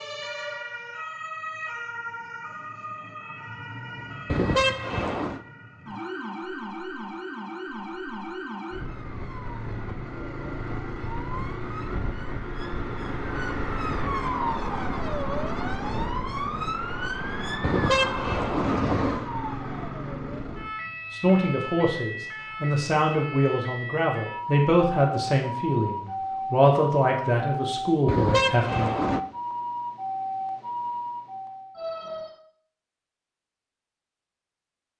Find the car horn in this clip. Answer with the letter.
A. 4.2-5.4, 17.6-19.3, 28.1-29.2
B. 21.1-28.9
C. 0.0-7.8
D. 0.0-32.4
A.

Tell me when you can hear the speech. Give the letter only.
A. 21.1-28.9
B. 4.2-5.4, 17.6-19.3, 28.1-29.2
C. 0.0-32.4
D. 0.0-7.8
A.